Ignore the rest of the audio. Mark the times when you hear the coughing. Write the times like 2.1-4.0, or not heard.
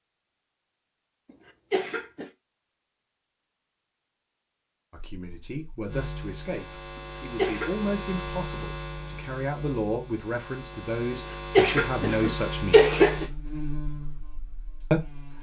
1.3-2.3, 7.0-7.9, 11.6-13.2.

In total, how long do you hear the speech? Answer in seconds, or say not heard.
8 s.